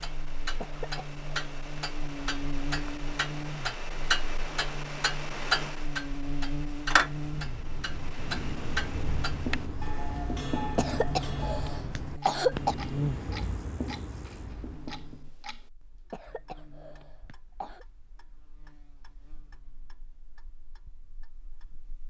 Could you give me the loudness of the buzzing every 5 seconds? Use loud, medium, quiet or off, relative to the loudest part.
loud, loud, loud, quiet, quiet.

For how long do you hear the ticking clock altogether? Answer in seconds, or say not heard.
22 s.